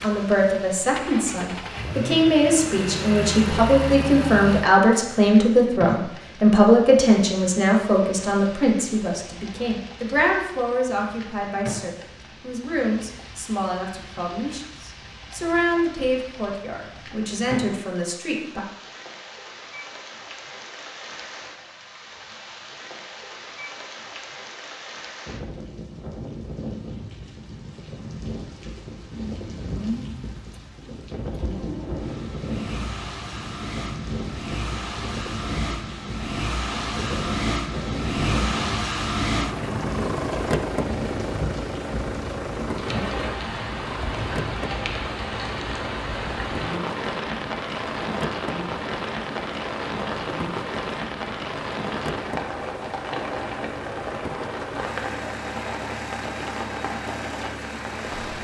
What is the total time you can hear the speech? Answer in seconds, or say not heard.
19 s.